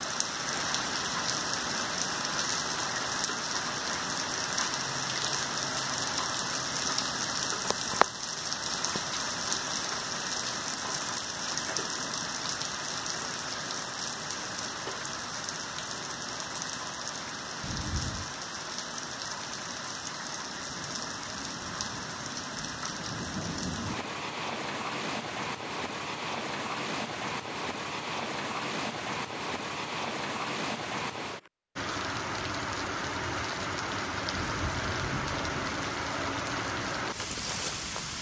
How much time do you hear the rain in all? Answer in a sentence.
The rain can be heard for 38 seconds in total.